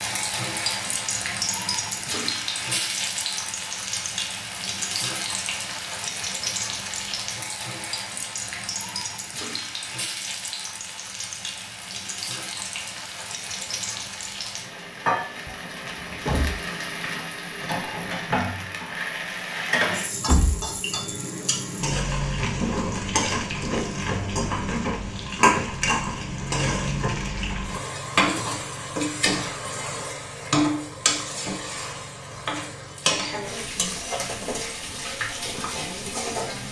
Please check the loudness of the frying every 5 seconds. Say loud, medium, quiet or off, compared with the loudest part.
loud, medium, medium, loud, loud, loud, loud, medium.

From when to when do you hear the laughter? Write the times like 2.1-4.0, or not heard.
not heard.